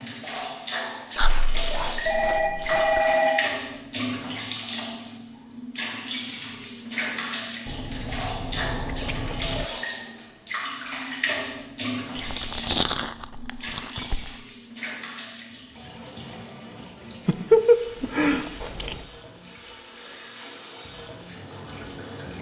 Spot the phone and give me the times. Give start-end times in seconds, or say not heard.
2.0-3.5.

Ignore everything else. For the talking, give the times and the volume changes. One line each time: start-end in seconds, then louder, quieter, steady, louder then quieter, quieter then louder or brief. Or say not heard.
not heard.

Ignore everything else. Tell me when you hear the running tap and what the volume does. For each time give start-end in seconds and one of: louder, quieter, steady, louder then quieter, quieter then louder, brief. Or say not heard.
0.0-22.3 quieter.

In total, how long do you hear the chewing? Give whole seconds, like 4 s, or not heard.
8 s.